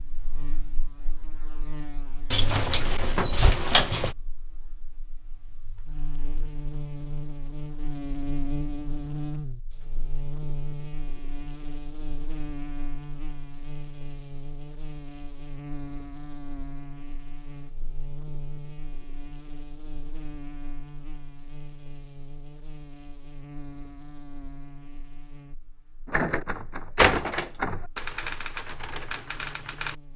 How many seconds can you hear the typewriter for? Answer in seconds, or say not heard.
4 s.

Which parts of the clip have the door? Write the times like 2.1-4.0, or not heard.
2.3-4.2, 26.9-27.5.